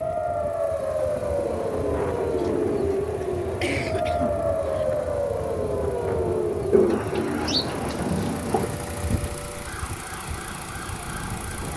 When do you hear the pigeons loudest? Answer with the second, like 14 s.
7 s.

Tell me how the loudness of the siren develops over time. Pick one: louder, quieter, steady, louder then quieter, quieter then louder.
quieter.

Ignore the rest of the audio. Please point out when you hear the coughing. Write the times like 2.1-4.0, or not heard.
3.4-4.8.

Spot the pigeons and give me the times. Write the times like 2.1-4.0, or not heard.
0.9-3.0, 6.7-8.7.